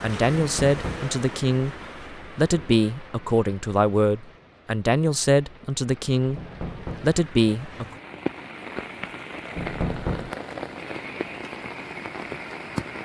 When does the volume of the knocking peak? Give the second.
10 s.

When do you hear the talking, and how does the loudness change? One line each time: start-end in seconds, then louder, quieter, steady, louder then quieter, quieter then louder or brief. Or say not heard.
0.0-7.8 steady.